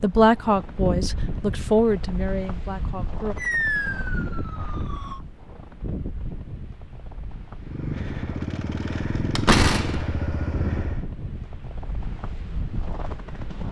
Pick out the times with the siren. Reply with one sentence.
The siren can be heard from 3.4 to 5.2 s.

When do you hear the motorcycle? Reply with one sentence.
You can hear the motorcycle from 7.5 to 11.1 s.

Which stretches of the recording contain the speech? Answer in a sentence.
The speech can be heard from 0.0 to 3.4 s.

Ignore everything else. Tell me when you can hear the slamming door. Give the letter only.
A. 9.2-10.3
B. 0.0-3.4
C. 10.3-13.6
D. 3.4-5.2
A.